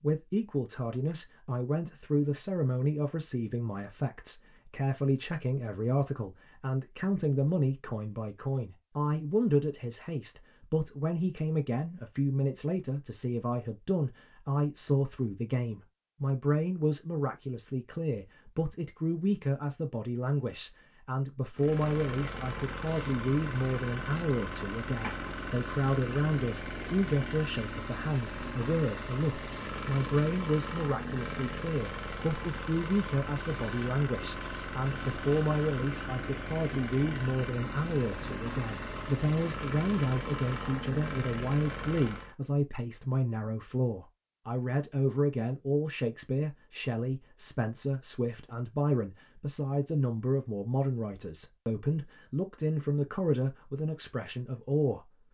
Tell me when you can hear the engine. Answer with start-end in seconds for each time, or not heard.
21.6-42.4.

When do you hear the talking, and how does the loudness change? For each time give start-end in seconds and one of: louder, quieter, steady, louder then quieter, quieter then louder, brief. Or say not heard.
0.0-55.1 steady.